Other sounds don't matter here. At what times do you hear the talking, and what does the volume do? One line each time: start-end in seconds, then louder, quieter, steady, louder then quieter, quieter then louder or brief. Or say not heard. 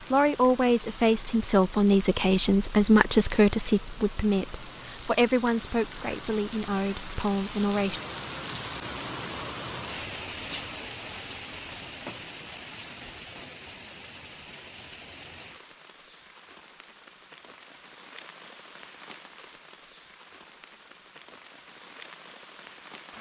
0.0-8.0 quieter.